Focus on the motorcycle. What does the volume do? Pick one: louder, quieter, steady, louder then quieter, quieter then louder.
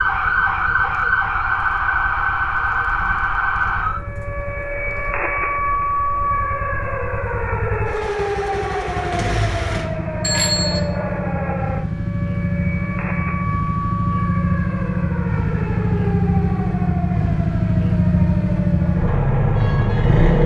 louder.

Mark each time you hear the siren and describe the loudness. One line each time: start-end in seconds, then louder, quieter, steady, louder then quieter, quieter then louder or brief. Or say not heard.
0.0-20.4 quieter.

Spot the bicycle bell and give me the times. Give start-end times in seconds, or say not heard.
10.2-10.8.